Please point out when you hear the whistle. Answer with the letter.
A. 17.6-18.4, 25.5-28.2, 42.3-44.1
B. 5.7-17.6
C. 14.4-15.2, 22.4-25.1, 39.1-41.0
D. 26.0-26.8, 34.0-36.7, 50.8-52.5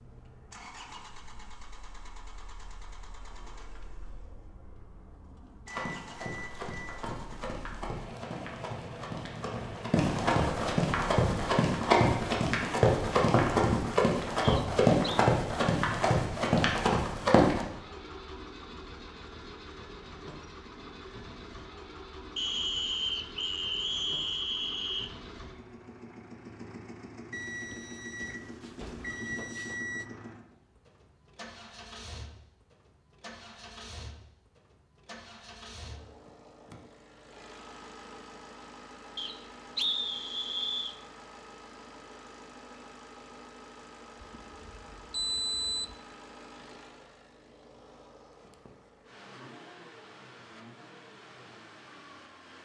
C.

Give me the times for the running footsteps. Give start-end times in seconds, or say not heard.
5.7-17.6.